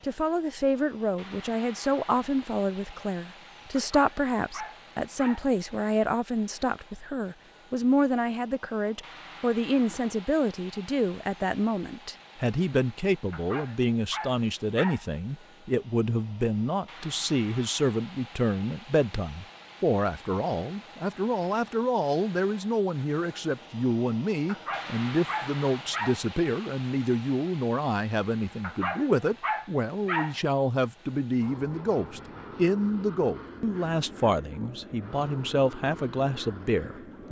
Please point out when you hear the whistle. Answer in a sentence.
You can't hear the whistle here.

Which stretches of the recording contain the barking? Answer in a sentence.
You can hear the barking from 3.8 to 5.5 s, from 13.3 to 15.1 s, from 24.4 to 26.2 s and from 28.6 to 30.4 s.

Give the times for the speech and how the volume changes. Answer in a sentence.
You can hear the speech from 0.0 to 37.2 s, at a steady volume.